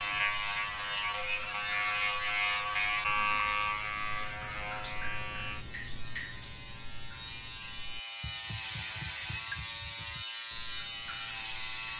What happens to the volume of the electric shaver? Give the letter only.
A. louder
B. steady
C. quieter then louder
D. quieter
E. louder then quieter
C.